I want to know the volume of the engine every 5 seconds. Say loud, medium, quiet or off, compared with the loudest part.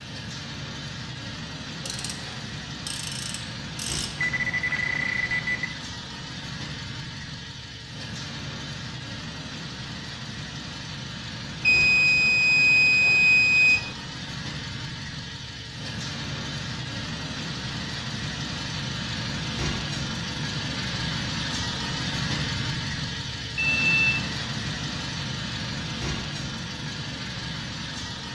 medium, medium, medium, loud, loud, loud.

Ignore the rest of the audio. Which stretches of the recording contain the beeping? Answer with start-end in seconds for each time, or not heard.
4.2-5.7, 11.6-13.9, 23.6-24.2.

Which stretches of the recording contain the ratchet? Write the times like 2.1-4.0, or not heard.
1.8-4.2.